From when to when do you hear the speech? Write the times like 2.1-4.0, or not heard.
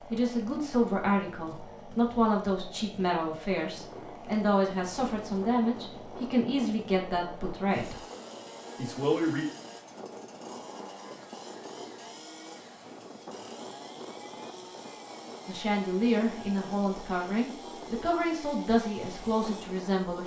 0.1-8.0, 8.8-9.4, 15.4-20.2.